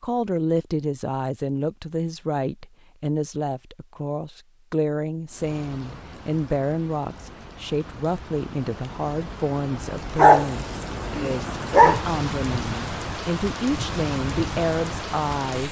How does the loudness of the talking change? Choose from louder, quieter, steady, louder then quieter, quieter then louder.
steady.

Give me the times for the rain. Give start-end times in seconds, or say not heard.
5.2-15.6.